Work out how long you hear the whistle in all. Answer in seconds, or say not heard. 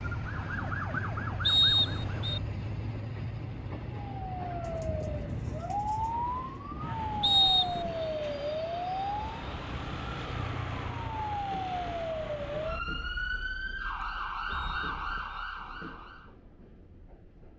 3 s.